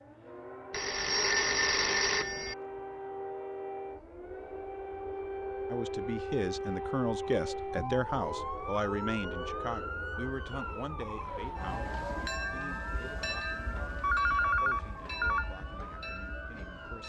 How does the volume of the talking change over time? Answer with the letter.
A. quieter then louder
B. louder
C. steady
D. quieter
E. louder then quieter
D.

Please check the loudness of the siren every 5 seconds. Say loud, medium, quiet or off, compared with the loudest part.
medium, loud, medium, medium.